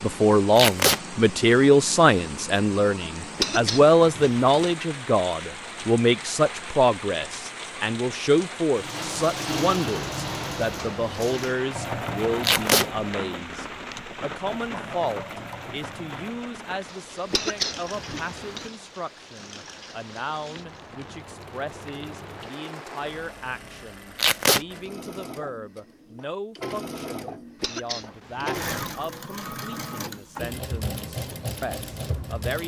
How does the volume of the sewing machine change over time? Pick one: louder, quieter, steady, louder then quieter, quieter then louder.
quieter then louder.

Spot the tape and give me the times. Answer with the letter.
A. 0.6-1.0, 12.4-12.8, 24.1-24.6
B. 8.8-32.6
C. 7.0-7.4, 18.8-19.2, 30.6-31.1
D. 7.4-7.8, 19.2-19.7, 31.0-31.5
A.